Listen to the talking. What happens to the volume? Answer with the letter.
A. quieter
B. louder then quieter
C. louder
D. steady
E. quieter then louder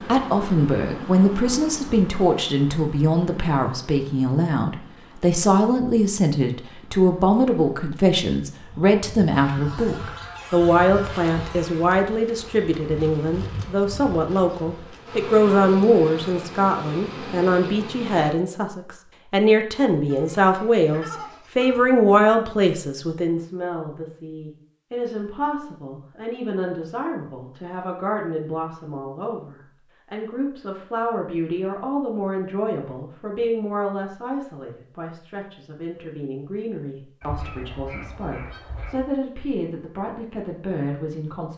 A.